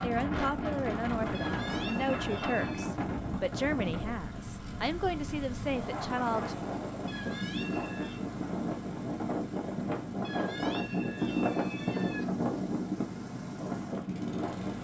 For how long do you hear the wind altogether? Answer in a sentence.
The wind can be heard for 15 seconds in total.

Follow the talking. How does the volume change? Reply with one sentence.
The loudness of the talking stays about the same.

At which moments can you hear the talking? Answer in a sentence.
You can hear the talking from 0.0 to 6.7 s.